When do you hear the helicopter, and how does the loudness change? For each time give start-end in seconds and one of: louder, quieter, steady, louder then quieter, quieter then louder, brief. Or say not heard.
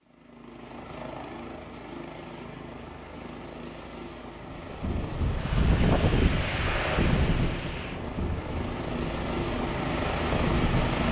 0.0-11.0 louder.